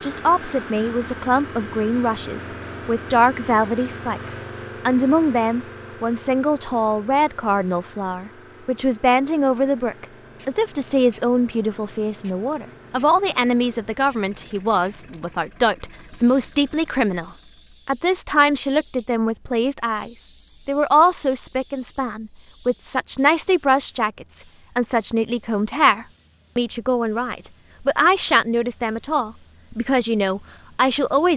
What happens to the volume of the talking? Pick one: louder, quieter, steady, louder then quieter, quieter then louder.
steady.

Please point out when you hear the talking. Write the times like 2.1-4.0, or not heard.
0.0-31.3.